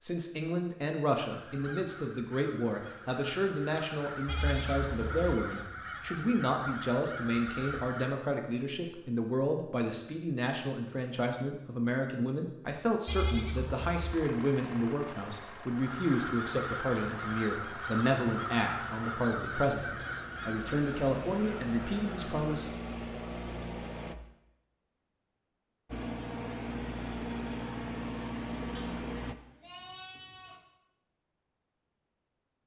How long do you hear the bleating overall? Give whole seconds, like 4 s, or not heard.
4 s.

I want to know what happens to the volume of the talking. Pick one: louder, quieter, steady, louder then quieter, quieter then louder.
steady.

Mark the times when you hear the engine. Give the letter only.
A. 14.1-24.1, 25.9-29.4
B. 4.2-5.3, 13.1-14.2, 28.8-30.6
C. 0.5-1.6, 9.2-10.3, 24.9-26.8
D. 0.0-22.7
A.